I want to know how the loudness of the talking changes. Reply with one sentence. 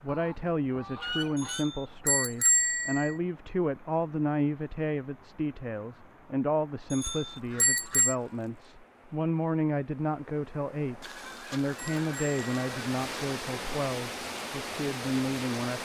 The loudness of the talking stays about the same.